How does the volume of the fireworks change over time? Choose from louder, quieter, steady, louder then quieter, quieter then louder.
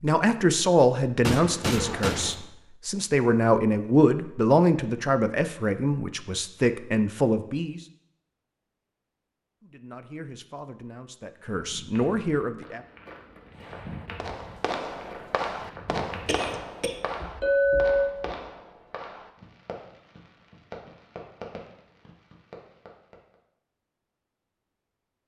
quieter.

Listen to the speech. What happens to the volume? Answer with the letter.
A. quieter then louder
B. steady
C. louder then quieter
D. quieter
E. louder
D.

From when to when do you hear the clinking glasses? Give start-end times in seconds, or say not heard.
17.4-18.1.